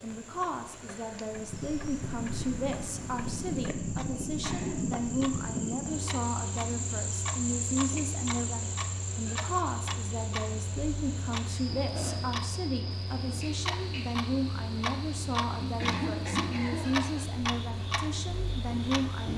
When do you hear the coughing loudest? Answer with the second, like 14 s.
16 s.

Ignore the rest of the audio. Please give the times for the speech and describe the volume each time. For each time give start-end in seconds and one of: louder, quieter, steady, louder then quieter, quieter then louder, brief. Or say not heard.
0.0-19.3 steady.